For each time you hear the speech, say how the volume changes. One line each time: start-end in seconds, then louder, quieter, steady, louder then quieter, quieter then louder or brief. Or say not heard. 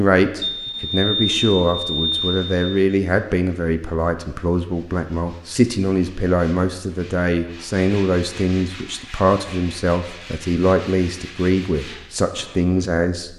0.0-13.3 steady.